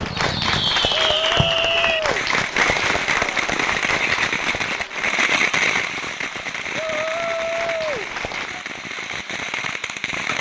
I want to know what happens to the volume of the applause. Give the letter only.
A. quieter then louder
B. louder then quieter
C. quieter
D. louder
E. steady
C.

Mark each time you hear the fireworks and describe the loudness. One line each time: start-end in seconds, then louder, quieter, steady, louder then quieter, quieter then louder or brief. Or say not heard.
0.0-10.3 quieter.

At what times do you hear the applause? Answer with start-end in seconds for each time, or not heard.
0.0-8.5.